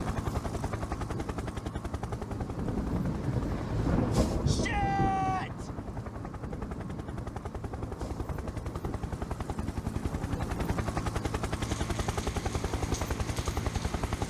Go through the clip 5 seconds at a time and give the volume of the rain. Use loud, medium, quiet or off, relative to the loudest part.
loud, medium, medium.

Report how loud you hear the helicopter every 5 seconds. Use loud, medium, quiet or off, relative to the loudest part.
loud, medium, loud.